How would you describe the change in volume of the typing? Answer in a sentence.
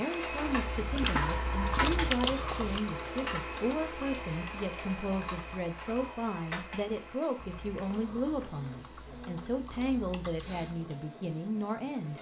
The loudness of the typing goes down.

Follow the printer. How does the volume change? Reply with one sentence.
The loudness of the printer goes down.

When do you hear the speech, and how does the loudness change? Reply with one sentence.
The speech can be heard from 0.0 to 12.1 s, at a steady volume.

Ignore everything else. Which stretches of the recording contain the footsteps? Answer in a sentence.
The footsteps can't be heard in this clip.